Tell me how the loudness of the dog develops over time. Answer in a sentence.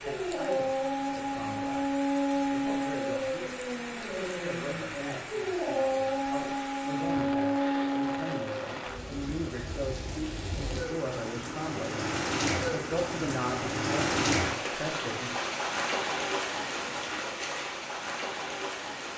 The loudness of the dog goes down, then up.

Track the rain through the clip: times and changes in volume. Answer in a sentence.
The rain can be heard from 0.0 to 19.1 s, getting louder.